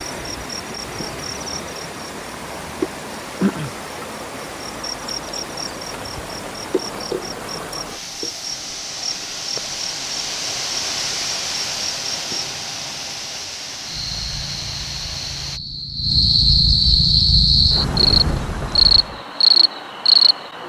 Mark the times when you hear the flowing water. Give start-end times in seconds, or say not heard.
0.0-15.6.